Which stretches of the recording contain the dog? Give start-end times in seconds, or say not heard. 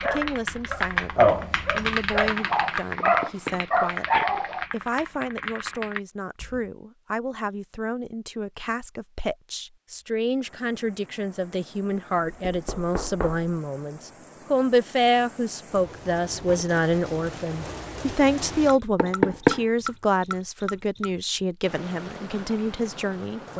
0.0-4.7.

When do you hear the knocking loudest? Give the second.
19 s.